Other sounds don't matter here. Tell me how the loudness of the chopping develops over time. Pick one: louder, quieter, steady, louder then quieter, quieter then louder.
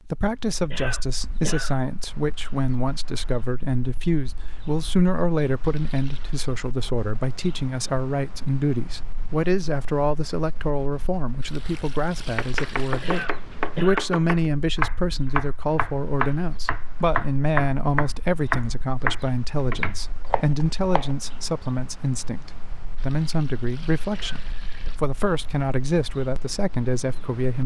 louder then quieter.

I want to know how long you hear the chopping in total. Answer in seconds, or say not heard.
9 s.